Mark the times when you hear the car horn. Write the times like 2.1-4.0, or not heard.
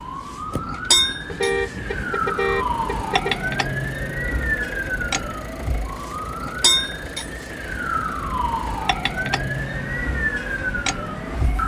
1.2-3.5.